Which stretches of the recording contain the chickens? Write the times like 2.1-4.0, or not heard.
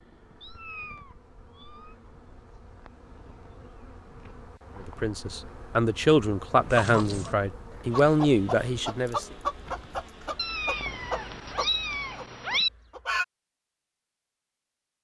6.7-13.2.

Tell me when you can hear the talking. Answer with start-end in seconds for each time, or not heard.
4.8-9.2.